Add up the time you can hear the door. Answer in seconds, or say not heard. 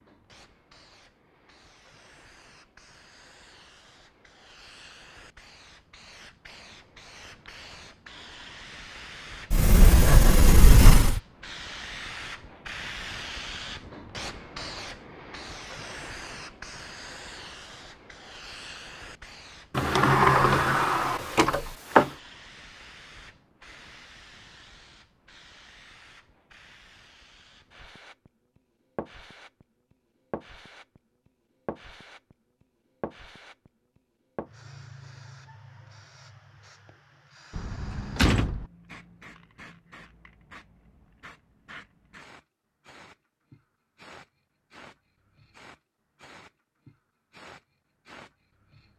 5 s.